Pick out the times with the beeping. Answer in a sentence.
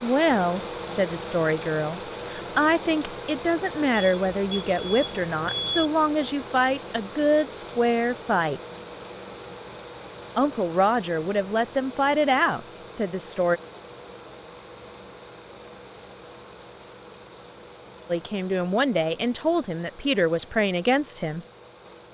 You can hear the beeping from 3.9 to 5.9 s.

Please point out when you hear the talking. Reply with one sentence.
The talking can be heard from 0.0 to 8.6 s, from 10.3 to 13.6 s and from 18.1 to 21.4 s.